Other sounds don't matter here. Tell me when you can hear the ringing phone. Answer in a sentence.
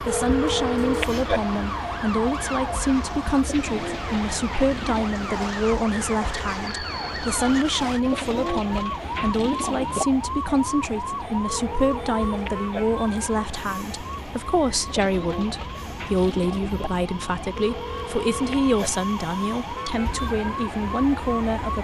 The ringing phone can be heard from 0.1 to 1.4 s, from 11.4 to 12.8 s and from 17.6 to 18.8 s.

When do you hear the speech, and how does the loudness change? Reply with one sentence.
The speech can be heard from 0.0 to 21.7 s, at a steady volume.